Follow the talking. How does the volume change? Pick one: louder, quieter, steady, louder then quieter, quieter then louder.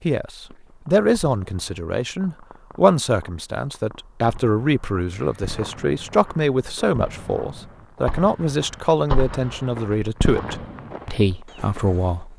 steady.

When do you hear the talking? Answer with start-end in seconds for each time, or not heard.
0.0-12.3.